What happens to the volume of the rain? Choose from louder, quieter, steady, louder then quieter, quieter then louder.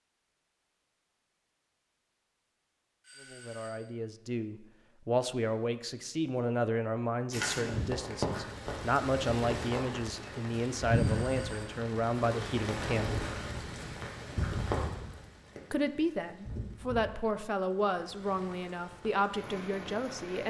quieter.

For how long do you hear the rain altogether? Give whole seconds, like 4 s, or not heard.
13 s.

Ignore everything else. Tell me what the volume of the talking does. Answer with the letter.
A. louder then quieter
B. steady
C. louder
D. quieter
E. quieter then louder
B.